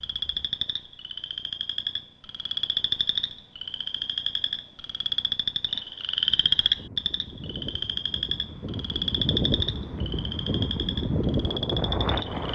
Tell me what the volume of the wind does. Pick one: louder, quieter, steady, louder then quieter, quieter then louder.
louder.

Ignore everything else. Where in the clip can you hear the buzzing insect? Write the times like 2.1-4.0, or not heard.
not heard.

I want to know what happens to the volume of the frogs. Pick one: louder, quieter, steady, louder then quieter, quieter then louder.
louder then quieter.